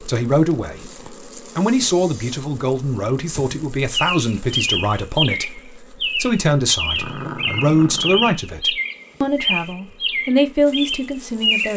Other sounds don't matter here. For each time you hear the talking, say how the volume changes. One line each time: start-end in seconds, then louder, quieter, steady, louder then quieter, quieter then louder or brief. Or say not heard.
0.0-11.7 steady.